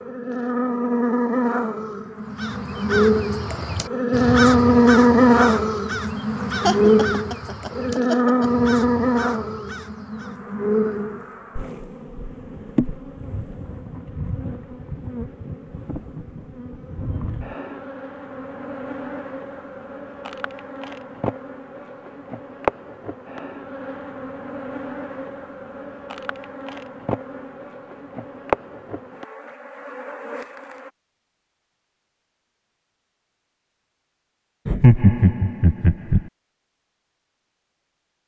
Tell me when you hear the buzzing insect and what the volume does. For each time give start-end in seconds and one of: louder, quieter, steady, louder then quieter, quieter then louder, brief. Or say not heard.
0.0-30.9 quieter.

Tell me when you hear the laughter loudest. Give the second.
35 s.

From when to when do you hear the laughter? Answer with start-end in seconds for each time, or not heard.
6.6-8.5, 34.6-36.2.